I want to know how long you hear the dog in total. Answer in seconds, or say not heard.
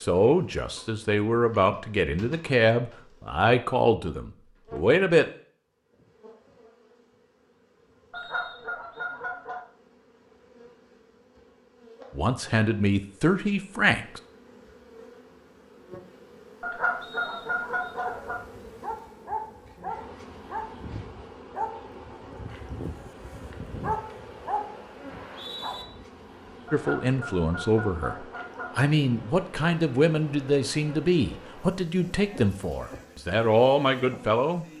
8 s.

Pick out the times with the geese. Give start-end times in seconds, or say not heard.
8.1-9.7, 16.6-18.4, 26.6-28.7.